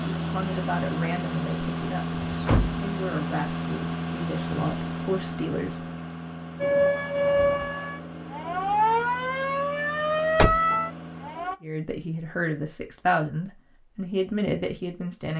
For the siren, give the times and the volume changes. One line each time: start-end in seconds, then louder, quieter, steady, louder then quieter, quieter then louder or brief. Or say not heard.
6.6-11.6 quieter then louder.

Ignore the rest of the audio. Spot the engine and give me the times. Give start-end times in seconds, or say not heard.
0.0-11.5.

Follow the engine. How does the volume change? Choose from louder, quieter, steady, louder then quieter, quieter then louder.
quieter.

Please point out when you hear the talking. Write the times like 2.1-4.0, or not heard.
0.1-5.8, 11.6-15.3.